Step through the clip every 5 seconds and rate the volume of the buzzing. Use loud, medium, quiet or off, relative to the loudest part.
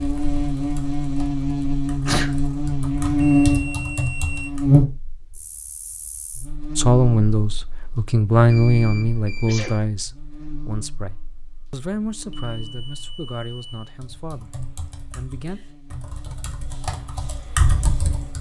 loud, quiet, quiet, quiet.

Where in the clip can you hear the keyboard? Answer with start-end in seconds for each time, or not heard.
0.0-4.8, 13.9-18.3.